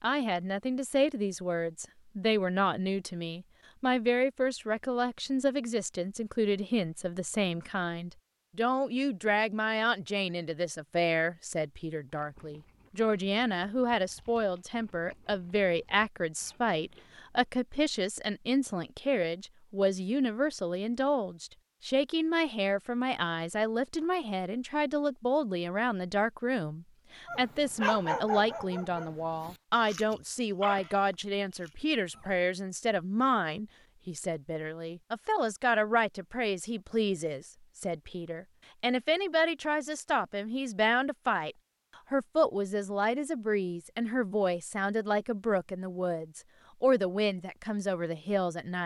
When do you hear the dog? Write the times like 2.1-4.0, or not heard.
27.2-32.4.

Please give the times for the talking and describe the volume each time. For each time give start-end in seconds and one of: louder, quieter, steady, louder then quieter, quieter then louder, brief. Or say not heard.
0.0-48.8 steady.